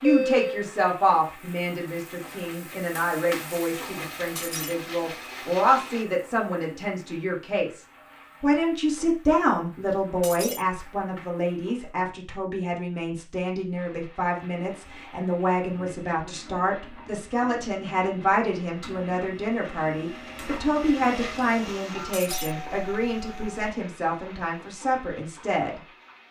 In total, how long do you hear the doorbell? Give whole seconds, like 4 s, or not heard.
2 s.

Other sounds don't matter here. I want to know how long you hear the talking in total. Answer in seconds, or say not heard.
25 s.